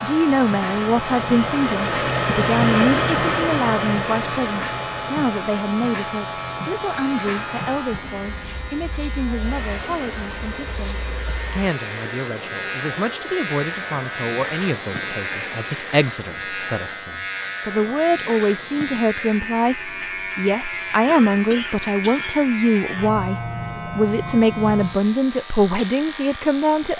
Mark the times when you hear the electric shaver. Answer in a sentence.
You can hear the electric shaver from 0.0 to 26.9 s.